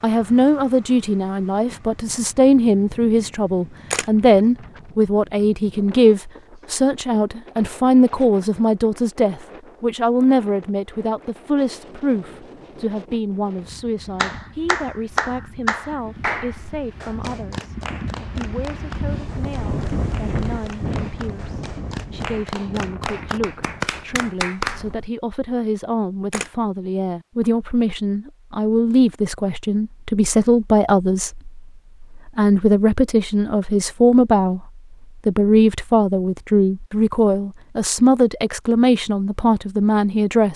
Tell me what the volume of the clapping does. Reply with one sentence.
The loudness of the clapping goes down, then up.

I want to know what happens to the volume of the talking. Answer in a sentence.
The loudness of the talking goes down, then up.